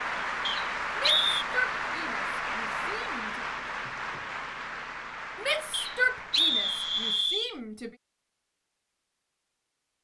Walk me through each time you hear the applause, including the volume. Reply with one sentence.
The applause can be heard from 0.0 to 7.3 s, getting quieter.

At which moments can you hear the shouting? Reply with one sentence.
The shouting can be heard from 0.9 to 3.5 s and from 5.3 to 7.9 s.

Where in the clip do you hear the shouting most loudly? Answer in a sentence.
The volume of the shouting peaks at 6 seconds.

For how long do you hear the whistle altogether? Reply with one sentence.
You can hear the whistle for 3 seconds altogether.